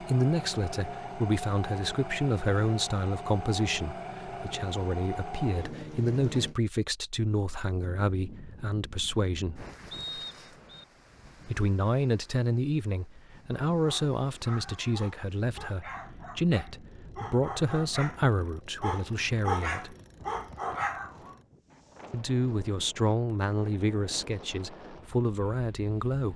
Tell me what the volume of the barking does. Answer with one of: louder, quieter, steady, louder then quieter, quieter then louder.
louder.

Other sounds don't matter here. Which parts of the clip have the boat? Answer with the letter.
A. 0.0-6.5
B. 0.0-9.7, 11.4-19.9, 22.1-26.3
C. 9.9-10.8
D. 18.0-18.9
A.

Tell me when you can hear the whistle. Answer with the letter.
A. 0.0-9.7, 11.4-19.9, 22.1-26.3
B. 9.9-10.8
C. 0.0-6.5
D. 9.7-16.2
B.